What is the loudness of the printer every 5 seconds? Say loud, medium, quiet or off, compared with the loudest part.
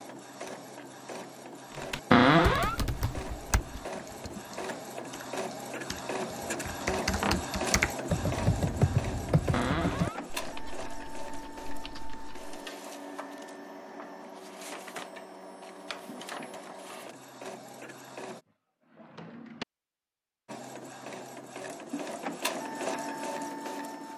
medium, loud, medium, medium, loud.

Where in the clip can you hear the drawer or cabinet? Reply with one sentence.
You can hear the drawer or cabinet from 2.1 to 2.8 s, from 9.5 to 10.2 s and from 18.9 to 19.6 s.